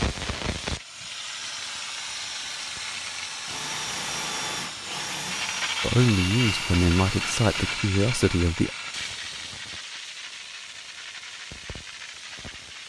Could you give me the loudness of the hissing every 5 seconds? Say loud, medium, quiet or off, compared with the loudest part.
loud, loud, medium.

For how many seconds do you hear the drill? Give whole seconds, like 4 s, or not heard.
5 s.